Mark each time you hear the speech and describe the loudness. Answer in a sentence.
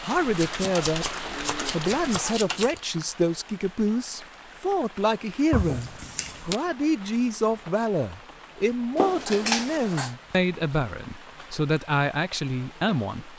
You can hear the speech from 0.0 to 13.3 s, at a steady volume.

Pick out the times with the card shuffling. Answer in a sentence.
The card shuffling can be heard from 0.3 to 2.8 s, from 5.5 to 6.6 s and from 8.9 to 10.2 s.